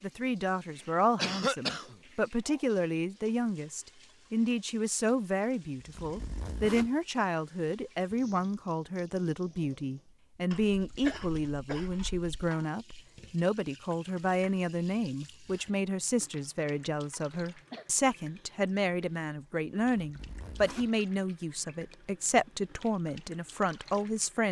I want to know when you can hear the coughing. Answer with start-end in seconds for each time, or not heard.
1.1-1.9, 10.5-12.5, 17.3-18.5.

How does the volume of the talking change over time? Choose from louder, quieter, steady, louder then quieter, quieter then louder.
steady.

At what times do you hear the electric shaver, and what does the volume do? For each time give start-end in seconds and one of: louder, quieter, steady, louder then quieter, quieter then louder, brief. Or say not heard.
not heard.